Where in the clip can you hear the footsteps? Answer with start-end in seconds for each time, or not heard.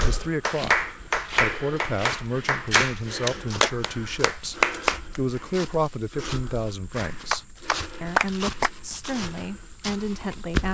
0.0-10.6.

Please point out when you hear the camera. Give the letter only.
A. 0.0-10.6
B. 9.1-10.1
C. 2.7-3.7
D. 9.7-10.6
C.